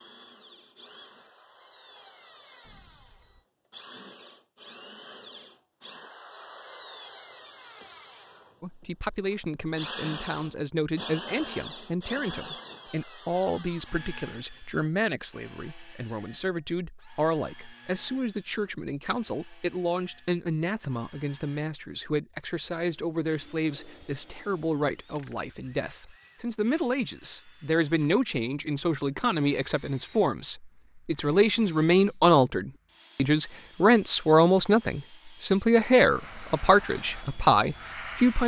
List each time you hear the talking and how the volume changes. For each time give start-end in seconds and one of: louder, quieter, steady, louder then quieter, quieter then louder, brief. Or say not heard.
8.6-38.4 louder.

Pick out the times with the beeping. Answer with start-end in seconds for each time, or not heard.
2.6-3.5.